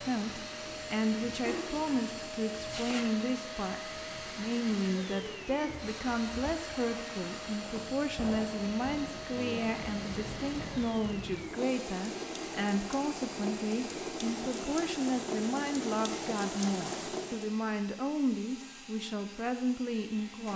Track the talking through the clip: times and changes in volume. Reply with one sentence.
The talking can be heard from 0.0 to 20.5 s, at a steady volume.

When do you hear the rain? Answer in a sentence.
You can hear the rain from 0.0 to 17.6 s.